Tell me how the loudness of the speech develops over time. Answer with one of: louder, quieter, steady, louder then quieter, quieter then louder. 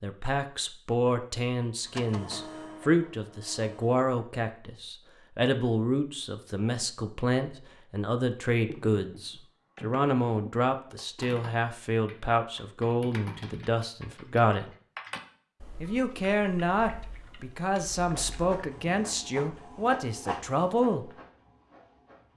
steady.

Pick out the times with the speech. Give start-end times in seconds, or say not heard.
0.0-14.7, 15.8-21.1.